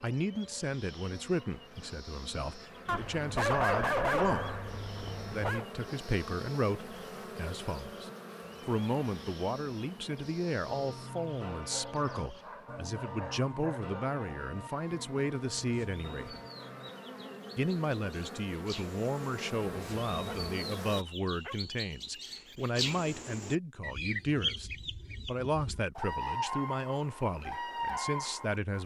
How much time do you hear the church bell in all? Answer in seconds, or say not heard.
6 s.